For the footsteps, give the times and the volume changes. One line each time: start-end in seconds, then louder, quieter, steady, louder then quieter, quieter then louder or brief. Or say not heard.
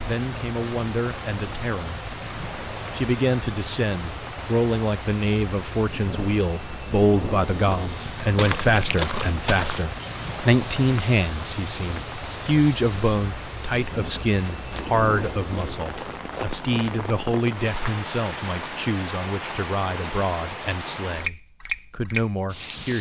7.3-17.1 quieter.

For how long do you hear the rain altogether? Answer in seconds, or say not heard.
23 s.